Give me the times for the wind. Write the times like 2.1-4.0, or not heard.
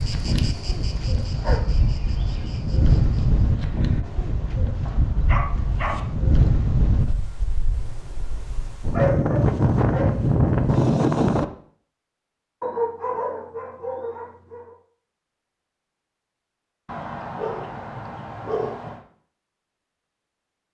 0.0-11.4.